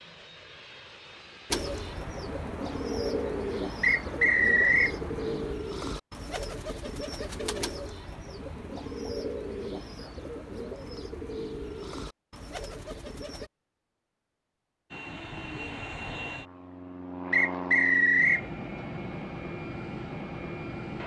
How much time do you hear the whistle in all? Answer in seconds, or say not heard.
2 s.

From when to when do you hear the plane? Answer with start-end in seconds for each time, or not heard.
0.0-5.5, 14.9-21.0.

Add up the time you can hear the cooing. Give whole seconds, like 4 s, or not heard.
12 s.